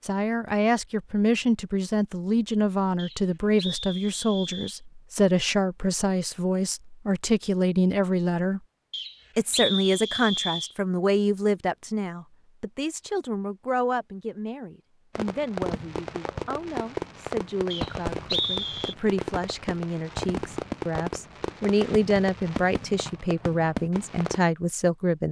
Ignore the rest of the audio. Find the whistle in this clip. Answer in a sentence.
You can hear the whistle from 3.0 to 4.8 s, from 8.9 to 10.8 s and from 17.7 to 18.9 s.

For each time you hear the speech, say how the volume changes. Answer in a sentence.
The speech can be heard from 0.0 to 8.6 s, at a steady volume; and from 9.3 to 25.2 s, getting quieter then louder.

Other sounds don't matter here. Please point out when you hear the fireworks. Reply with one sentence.
The fireworks can be heard from 15.2 to 24.4 s.